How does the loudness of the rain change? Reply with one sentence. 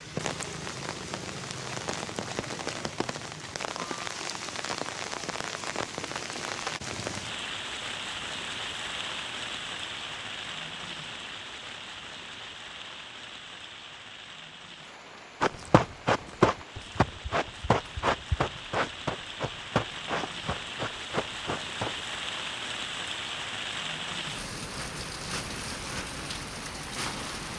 The loudness of the rain goes down, then up.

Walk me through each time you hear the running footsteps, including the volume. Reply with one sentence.
The running footsteps can be heard from 15.4 to 22.0 s, getting quieter.